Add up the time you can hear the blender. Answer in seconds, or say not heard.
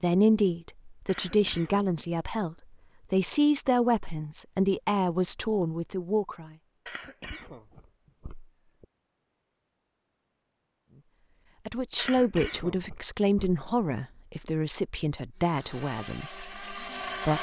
2 s.